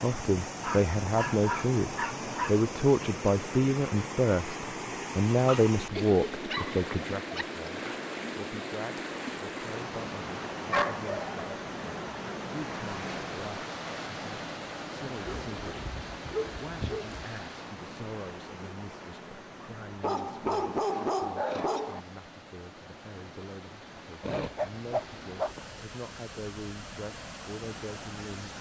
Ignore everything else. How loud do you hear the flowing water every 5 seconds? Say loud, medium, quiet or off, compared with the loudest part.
loud, loud, loud, medium, medium, medium.